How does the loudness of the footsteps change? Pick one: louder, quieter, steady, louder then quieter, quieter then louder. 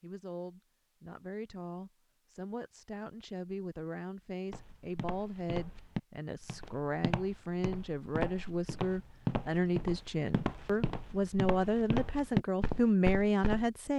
louder.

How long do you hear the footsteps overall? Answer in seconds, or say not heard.
9 s.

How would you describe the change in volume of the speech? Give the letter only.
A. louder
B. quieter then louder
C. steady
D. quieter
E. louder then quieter
A.